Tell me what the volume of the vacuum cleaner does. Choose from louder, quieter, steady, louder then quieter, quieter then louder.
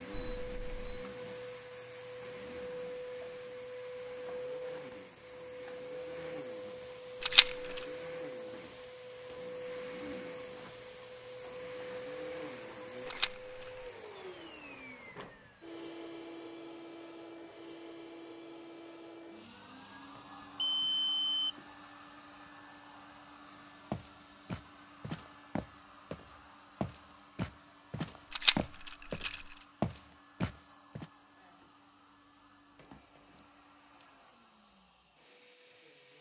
quieter.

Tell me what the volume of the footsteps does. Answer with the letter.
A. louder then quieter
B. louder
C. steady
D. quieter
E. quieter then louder
B.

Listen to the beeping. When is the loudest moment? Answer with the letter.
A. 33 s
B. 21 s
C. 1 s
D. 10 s
B.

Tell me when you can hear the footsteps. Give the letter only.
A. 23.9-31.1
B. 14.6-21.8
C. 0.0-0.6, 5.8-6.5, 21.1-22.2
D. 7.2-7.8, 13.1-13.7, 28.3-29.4
A.